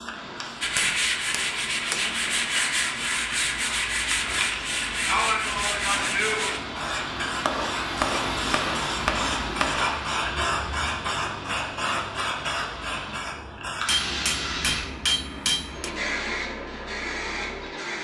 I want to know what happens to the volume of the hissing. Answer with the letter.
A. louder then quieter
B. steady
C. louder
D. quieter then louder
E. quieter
C.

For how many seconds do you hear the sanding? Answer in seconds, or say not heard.
6 s.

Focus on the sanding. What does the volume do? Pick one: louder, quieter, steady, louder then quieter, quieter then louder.
steady.